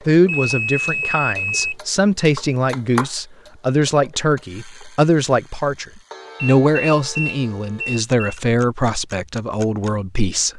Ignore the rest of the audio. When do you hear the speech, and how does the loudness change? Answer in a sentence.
You can hear the speech from 0.1 to 10.5 s, at a steady volume.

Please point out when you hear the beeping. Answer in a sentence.
The beeping can be heard from 0.2 to 1.8 s and from 6.3 to 8.3 s.